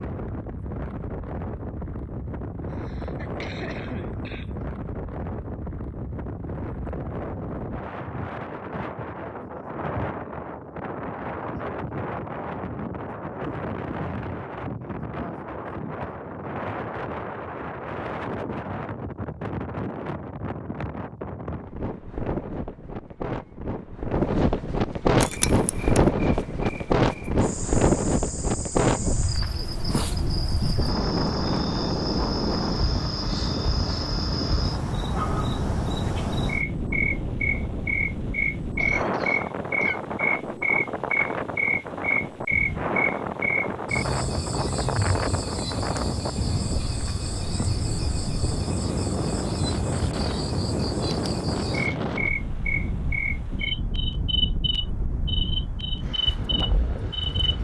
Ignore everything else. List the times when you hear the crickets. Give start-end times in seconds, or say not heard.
25.1-57.5.